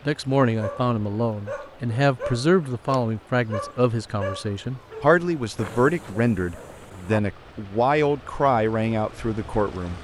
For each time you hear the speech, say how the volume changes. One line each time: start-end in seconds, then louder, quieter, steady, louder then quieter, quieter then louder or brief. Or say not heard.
0.1-9.9 steady.